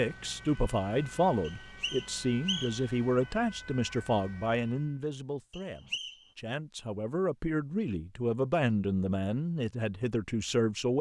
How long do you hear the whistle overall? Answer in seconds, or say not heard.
2 s.